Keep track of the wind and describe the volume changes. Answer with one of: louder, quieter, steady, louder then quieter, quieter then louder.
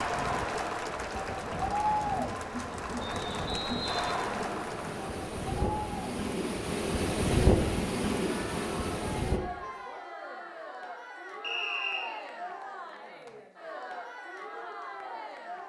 louder.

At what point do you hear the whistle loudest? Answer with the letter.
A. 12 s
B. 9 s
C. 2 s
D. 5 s
A.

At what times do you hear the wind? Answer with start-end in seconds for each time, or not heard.
0.0-9.4.